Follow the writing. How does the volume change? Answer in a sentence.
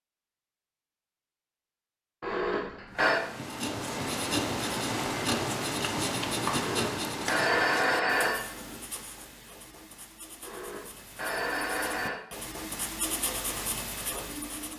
The volume of the writing goes down, then up.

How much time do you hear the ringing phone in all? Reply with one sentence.
You can hear the ringing phone for 5 seconds altogether.